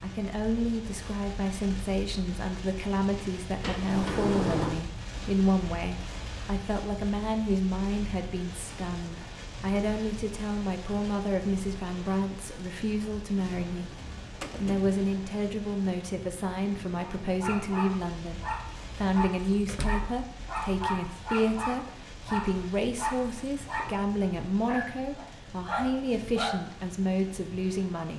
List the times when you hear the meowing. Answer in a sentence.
You can't hear the meowing here.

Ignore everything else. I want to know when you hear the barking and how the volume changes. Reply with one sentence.
You can hear the barking from 17.0 to 26.6 s, at a steady volume.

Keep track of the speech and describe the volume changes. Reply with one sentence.
The loudness of the speech stays about the same.